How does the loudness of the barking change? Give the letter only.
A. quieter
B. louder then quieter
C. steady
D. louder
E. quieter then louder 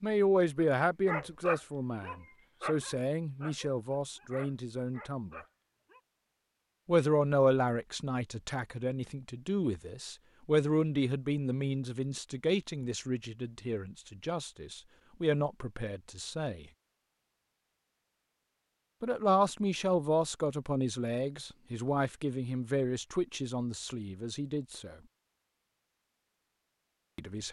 A.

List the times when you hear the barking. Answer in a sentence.
The barking can be heard from 0.6 to 6.0 s.